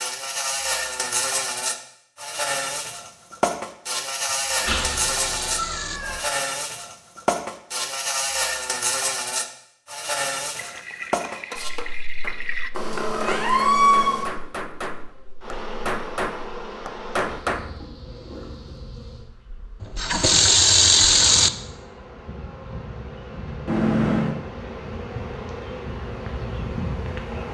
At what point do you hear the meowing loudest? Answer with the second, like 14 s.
14 s.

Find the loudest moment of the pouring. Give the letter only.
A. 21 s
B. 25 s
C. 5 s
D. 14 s
A.